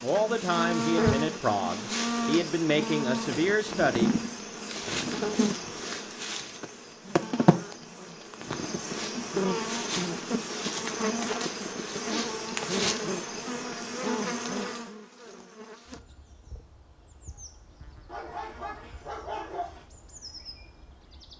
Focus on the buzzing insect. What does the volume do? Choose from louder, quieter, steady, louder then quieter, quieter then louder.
quieter.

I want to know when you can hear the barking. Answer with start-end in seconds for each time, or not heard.
18.1-19.9.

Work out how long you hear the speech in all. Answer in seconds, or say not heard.
4 s.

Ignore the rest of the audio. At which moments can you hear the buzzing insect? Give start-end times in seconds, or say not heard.
0.0-21.3.